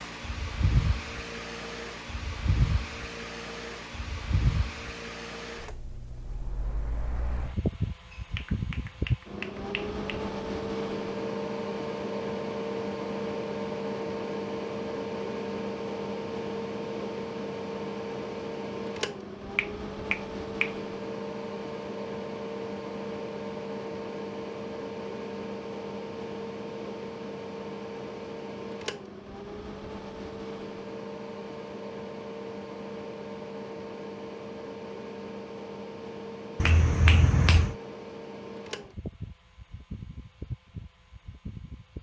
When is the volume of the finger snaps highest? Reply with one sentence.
The volume of the finger snaps peaks at 37 seconds.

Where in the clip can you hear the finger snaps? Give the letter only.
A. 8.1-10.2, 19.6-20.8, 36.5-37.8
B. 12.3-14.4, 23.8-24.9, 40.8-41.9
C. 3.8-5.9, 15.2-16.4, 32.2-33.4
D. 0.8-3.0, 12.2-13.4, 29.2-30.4
A.